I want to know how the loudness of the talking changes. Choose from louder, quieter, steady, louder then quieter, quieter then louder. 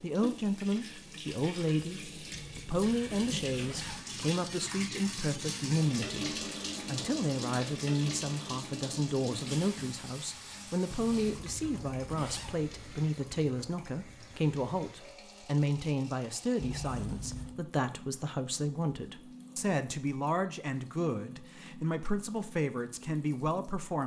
steady.